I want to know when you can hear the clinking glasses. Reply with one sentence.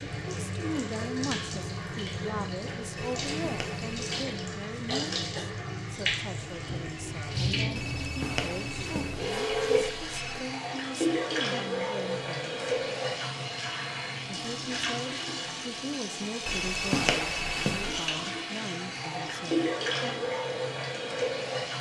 The clinking glasses can't be heard in this clip.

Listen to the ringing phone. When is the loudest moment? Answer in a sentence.
The volume of the ringing phone peaks at 17 seconds.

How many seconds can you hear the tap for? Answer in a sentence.
The tap can be heard for 22 seconds in total.